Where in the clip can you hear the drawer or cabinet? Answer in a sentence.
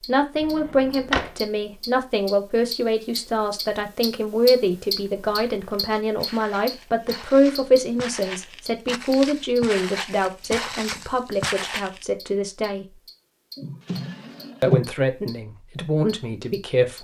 You can hear the drawer or cabinet from 0.3 to 1.5 s and from 13.6 to 14.9 s.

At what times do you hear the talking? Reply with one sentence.
You can hear the talking from 0.0 to 13.0 s and from 14.6 to 16.9 s.